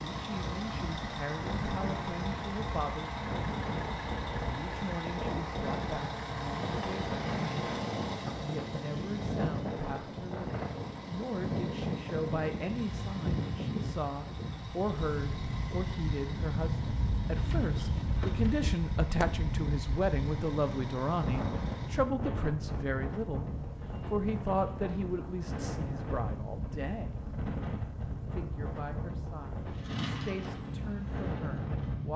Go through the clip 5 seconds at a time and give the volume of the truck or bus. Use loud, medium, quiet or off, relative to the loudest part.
loud, loud, loud, medium, medium, medium, loud.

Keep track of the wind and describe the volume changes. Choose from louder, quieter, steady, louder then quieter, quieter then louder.
steady.